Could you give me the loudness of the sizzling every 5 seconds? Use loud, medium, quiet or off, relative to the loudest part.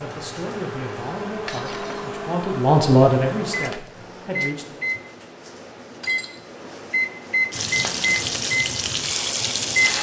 off, loud.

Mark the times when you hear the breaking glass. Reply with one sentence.
You can hear the breaking glass from 1.4 to 2.1 s and from 6.0 to 6.4 s.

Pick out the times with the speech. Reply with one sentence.
You can hear the speech from 0.0 to 4.8 s.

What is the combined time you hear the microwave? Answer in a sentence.
The microwave can be heard for 10 seconds in total.